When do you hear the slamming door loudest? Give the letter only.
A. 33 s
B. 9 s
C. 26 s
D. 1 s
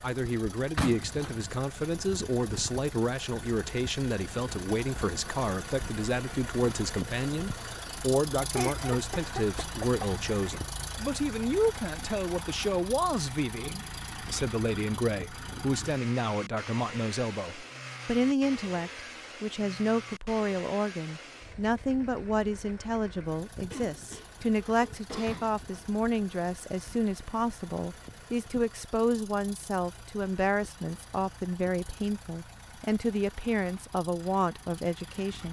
D.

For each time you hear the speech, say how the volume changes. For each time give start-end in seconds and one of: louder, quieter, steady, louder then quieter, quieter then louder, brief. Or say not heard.
0.0-35.4 steady.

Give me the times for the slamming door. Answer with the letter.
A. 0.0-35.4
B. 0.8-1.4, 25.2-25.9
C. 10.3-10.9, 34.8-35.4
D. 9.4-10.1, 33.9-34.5
B.